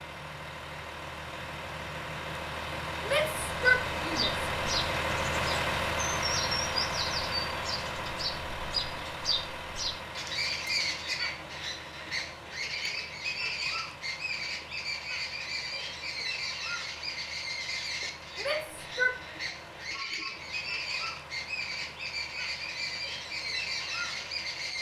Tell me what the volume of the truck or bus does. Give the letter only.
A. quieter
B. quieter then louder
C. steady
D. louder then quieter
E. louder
A.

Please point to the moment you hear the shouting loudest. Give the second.
4 s.